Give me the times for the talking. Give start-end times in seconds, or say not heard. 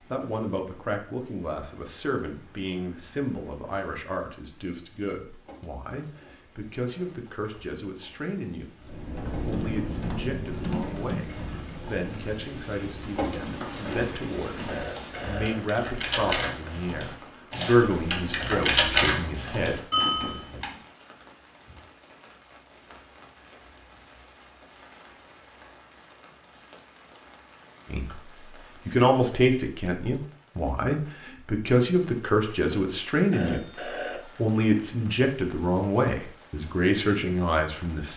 0.1-19.8, 27.9-38.1.